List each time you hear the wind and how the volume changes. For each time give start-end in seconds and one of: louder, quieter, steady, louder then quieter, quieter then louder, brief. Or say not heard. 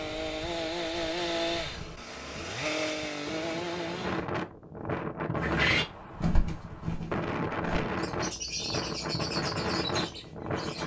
0.0-10.8 louder.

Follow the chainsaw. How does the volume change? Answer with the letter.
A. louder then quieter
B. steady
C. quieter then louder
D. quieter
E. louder
C.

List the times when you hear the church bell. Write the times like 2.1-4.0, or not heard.
not heard.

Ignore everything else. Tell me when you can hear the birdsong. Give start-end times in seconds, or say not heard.
5.3-10.8.